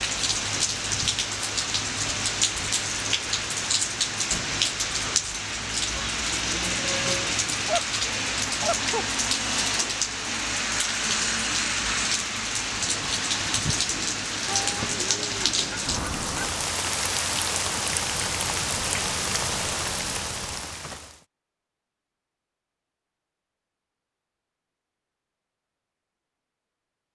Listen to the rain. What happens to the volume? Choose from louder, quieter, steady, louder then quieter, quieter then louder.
steady.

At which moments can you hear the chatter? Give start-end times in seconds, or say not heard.
not heard.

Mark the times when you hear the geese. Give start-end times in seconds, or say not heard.
7.5-9.1, 14.4-16.5.